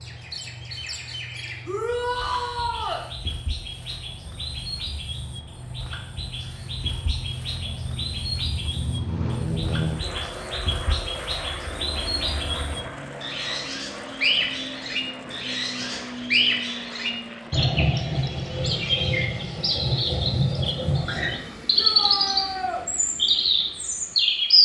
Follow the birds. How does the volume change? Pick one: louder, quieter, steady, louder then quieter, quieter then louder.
louder.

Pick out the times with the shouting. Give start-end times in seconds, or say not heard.
1.6-3.0, 21.8-22.9.